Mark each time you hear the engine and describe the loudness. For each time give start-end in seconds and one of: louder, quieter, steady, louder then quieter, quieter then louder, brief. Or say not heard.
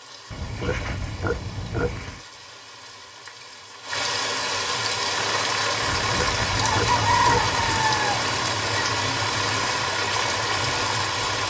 5.0-11.4 steady.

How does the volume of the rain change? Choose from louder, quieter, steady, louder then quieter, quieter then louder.
louder.